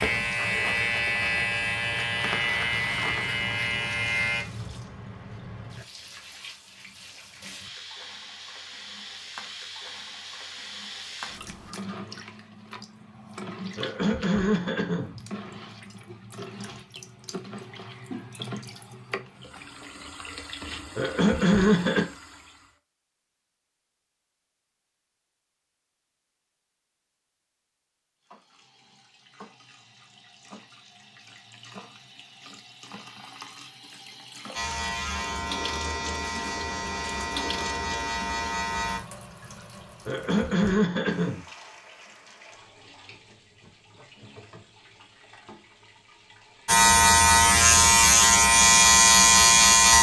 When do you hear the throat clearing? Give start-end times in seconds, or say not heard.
13.8-15.2, 20.9-22.1, 40.0-41.4.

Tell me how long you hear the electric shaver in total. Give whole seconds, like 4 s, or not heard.
12 s.